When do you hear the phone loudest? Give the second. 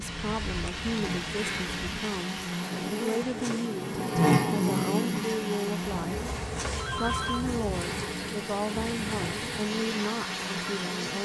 7 s.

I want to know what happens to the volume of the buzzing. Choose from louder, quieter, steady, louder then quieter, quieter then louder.
louder then quieter.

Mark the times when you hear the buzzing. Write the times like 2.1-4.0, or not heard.
0.0-11.1.